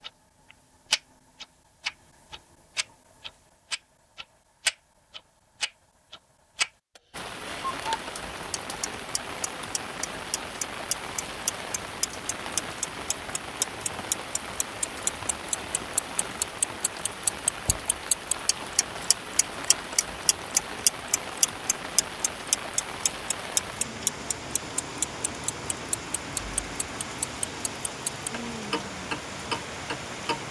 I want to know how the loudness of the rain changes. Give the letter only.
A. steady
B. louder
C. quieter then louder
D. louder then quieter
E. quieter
A.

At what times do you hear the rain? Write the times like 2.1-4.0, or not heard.
7.1-30.4.